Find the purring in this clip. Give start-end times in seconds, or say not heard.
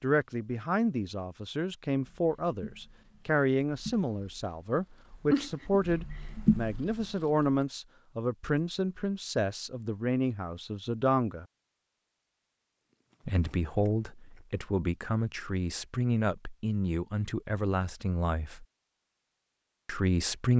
2.0-7.7.